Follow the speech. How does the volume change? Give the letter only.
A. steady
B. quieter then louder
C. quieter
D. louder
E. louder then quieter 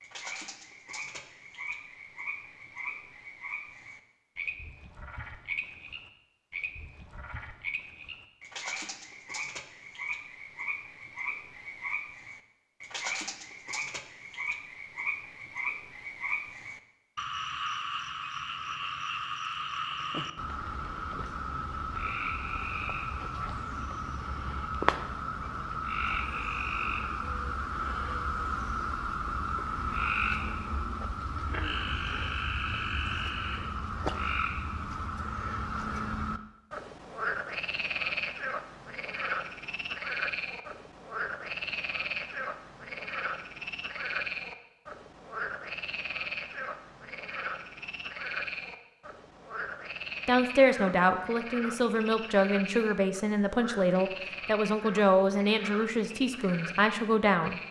A.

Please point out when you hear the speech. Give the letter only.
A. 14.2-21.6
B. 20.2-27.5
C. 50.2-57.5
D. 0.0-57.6
C.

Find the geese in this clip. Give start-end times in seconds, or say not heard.
not heard.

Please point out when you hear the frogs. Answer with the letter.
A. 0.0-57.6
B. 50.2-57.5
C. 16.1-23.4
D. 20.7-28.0
A.